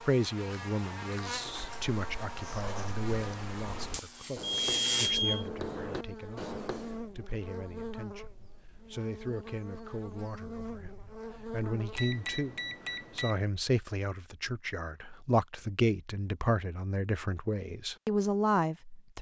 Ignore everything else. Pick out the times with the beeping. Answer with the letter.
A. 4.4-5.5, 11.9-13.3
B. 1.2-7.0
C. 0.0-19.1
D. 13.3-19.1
A.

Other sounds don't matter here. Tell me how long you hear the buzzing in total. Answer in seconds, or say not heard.
12 s.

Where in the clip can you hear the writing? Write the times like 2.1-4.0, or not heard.
1.2-7.0.